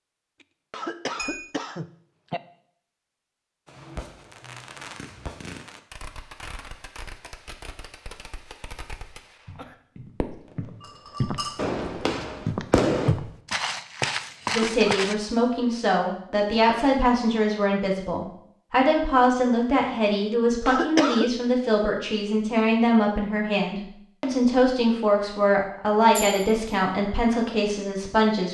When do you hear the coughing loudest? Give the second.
21 s.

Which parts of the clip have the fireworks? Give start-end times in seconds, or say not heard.
3.6-10.7, 11.6-13.2.